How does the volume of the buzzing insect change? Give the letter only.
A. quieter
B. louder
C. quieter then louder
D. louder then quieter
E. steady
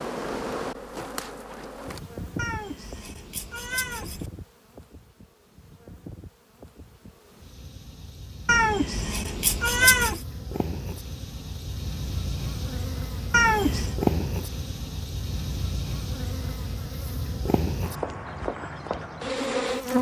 C.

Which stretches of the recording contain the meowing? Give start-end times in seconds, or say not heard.
2.4-4.3, 8.4-10.2, 13.3-13.9.